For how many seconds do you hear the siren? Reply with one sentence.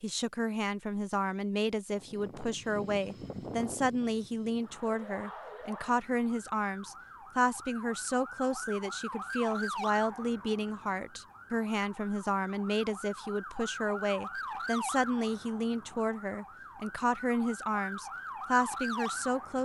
You can hear the siren for 15 seconds altogether.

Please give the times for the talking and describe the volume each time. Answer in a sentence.
You can hear the talking from 0.0 to 19.6 s, at a steady volume.